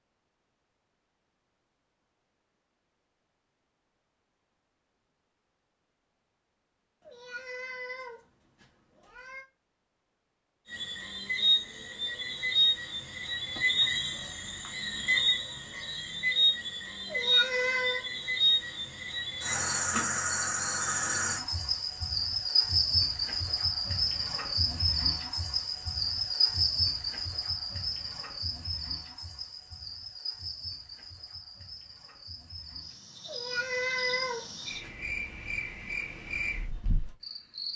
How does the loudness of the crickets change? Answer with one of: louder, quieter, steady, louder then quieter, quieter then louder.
quieter.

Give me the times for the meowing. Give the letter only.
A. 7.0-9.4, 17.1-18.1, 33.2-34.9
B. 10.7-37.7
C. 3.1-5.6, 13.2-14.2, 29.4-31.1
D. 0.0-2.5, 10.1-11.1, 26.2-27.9
A.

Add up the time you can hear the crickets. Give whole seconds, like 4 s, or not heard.
27 s.